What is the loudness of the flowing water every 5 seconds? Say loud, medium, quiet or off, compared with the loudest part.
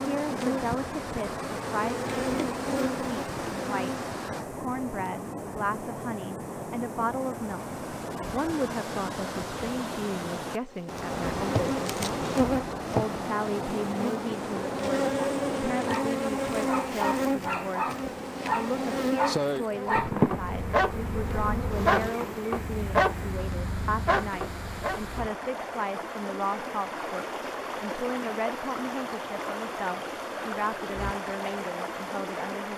loud, loud, loud, medium, medium, loud, loud.